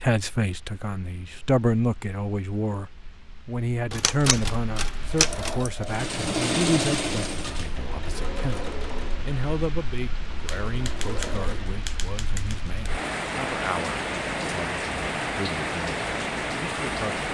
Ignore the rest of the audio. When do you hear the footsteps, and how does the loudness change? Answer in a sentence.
You can't hear the footsteps here.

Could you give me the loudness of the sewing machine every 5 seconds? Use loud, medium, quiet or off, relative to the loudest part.
off, loud, medium, off.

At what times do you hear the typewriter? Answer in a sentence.
You can hear the typewriter from 3.9 to 5.5 s and from 10.4 to 12.9 s.